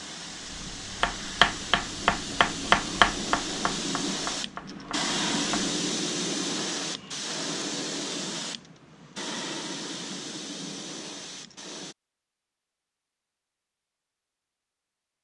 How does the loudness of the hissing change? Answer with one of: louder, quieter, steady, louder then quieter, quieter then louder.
louder then quieter.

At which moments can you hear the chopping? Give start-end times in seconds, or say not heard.
0.6-5.7.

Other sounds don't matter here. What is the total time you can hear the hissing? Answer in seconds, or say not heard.
12 s.